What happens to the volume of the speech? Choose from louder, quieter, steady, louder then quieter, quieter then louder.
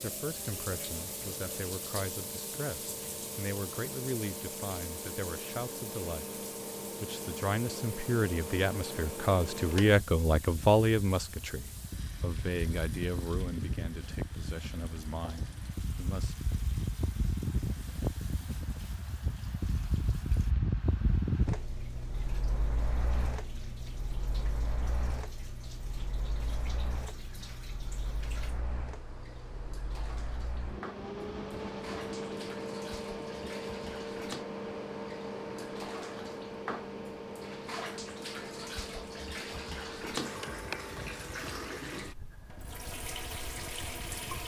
louder then quieter.